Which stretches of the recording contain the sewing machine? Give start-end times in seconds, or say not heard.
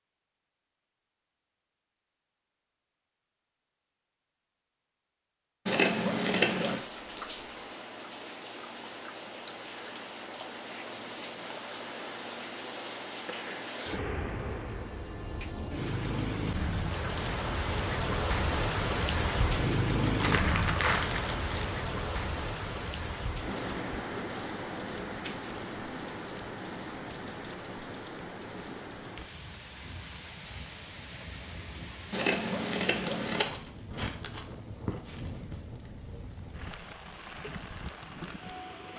not heard.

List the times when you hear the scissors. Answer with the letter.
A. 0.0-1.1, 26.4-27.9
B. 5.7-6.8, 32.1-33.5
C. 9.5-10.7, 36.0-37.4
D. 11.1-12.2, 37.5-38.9
B.